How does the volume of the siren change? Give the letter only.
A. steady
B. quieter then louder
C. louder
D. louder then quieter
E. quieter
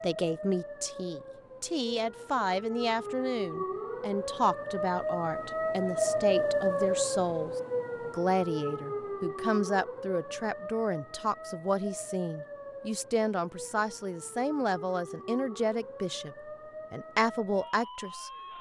D.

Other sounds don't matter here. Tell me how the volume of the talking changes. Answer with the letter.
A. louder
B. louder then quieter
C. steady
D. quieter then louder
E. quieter
C.